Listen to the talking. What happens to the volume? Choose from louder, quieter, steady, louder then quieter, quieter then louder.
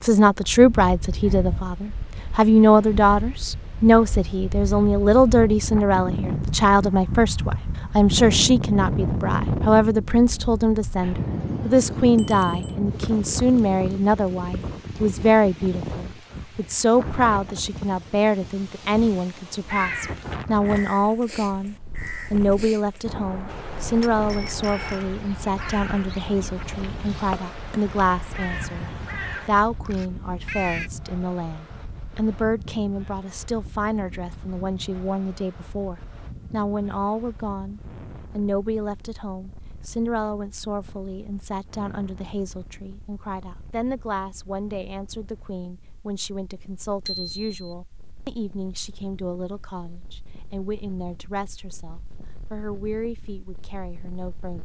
quieter.